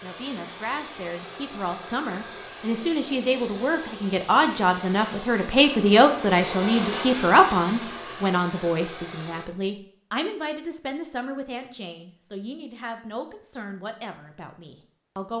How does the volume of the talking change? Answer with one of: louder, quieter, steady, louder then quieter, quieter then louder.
louder then quieter.